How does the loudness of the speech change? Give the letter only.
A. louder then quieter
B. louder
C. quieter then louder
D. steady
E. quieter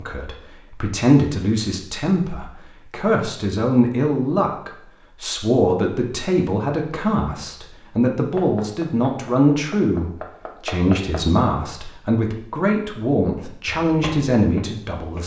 D.